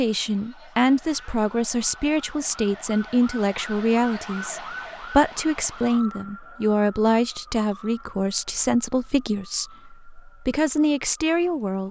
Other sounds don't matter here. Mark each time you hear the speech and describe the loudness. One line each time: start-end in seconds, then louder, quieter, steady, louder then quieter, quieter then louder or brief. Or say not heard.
0.0-11.8 steady.